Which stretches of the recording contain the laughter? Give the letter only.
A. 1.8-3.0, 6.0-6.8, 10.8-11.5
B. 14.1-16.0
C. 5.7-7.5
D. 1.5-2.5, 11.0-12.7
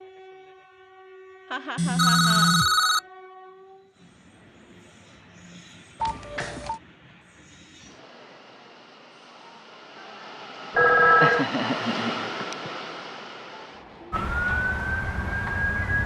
D.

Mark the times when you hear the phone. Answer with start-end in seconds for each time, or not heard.
1.8-3.0, 6.0-6.8, 10.8-11.5.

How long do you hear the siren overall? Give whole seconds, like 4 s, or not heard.
2 s.